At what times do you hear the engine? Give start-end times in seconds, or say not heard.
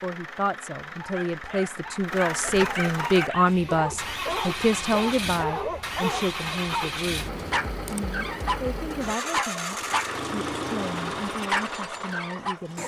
0.0-12.8.